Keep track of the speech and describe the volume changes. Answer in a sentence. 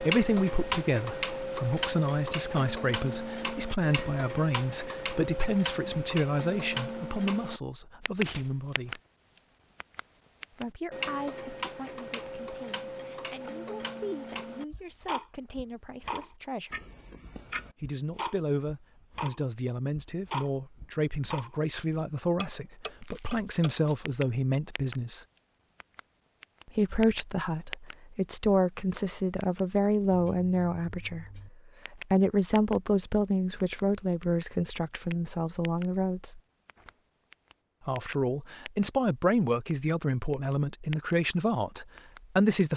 The loudness of the speech goes down, then up.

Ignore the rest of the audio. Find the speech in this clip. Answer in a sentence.
You can hear the speech from 0.0 to 9.0 s, from 10.5 to 16.9 s, from 17.8 to 25.2 s, from 26.8 to 36.4 s and from 37.9 to 42.7 s.